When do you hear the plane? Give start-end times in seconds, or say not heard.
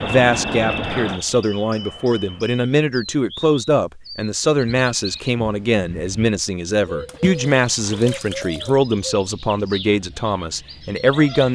0.0-2.5.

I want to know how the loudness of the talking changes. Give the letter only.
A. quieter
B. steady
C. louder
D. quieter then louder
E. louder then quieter
B.